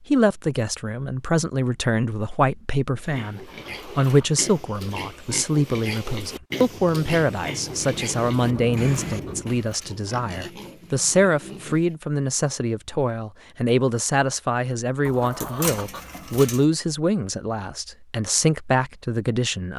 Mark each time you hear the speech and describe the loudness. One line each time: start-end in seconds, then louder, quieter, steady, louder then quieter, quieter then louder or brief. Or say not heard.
0.1-19.7 steady.